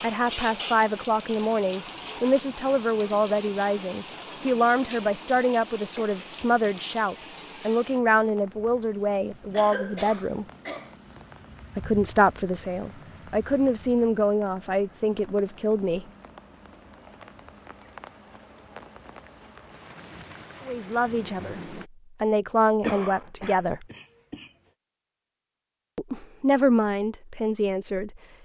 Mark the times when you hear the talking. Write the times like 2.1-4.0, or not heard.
0.0-10.4, 11.8-16.1, 20.6-23.9, 25.9-28.2.